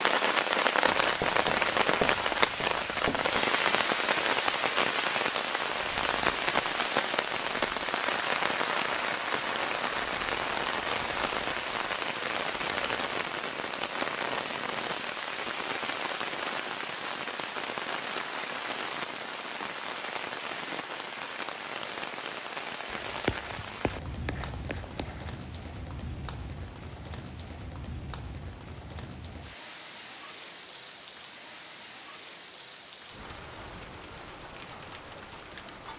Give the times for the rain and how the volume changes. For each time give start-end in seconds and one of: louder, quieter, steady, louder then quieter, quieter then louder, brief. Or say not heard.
0.0-35.9 quieter.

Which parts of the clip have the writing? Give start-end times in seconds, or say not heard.
0.8-3.5, 22.9-25.4.